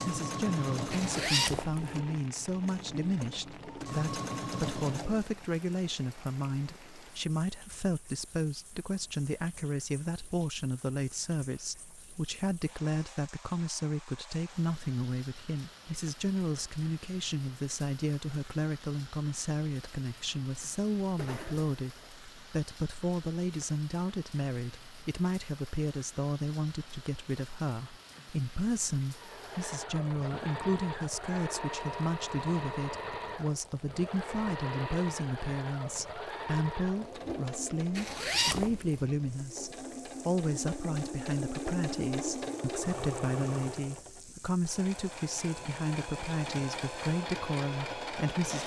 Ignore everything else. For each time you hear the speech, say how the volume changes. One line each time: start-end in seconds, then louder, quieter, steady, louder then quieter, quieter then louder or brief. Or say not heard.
0.0-48.6 steady.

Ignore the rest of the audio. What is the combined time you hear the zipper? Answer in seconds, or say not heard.
3 s.